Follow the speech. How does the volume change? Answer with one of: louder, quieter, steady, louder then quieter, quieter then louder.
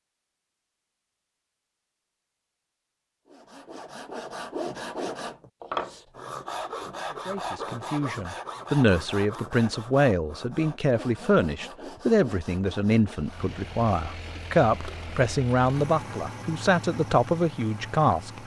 steady.